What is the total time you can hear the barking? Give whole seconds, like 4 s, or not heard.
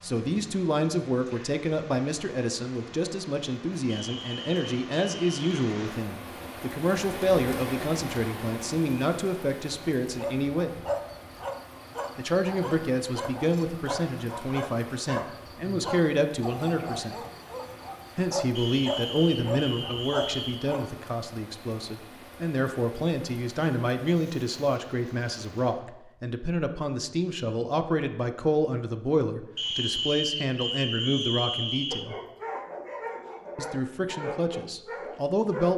15 s.